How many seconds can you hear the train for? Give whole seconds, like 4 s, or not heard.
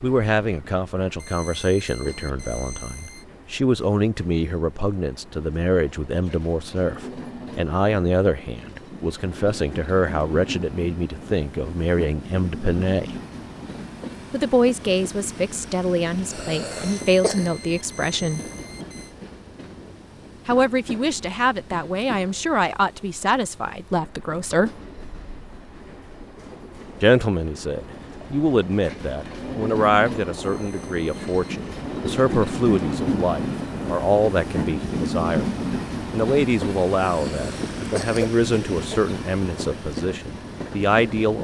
41 s.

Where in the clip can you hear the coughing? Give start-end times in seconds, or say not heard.
16.2-17.5, 37.0-39.0.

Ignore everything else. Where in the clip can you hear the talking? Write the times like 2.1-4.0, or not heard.
0.0-13.2, 14.3-18.4, 20.4-24.8, 27.0-35.5, 36.1-41.3.